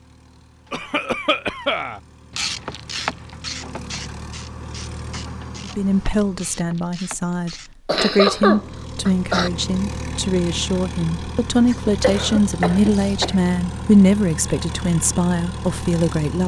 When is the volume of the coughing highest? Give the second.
8 s.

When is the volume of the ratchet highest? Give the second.
3 s.